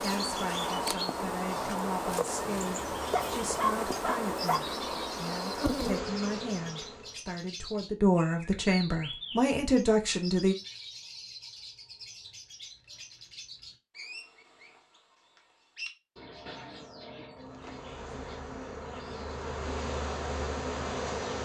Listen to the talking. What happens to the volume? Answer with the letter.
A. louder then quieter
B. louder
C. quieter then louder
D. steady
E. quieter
B.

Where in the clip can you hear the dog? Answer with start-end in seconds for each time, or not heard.
3.1-4.6.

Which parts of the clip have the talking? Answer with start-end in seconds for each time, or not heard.
0.0-10.6.